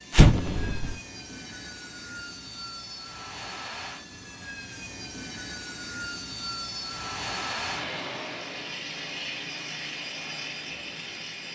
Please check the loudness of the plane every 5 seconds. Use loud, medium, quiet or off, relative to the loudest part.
medium, loud, loud.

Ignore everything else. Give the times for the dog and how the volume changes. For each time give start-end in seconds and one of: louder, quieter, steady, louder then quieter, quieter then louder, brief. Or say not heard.
not heard.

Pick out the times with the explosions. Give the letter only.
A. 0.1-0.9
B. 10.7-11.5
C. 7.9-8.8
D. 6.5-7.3
A.